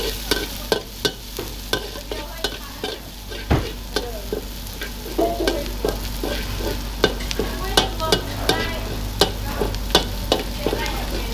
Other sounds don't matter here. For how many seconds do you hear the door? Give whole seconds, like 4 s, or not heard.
2 s.